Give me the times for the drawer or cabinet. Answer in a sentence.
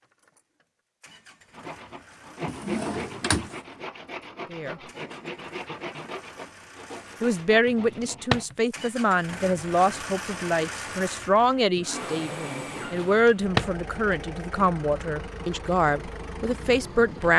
You can hear the drawer or cabinet from 2.5 to 3.5 s, from 7.7 to 8.6 s and from 12.9 to 13.7 s.